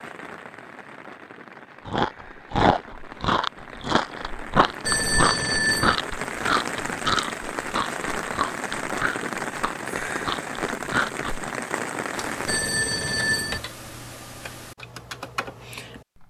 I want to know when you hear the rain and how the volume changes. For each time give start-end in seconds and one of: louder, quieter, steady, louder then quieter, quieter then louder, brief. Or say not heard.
0.0-12.6 louder.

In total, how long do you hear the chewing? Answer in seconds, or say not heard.
10 s.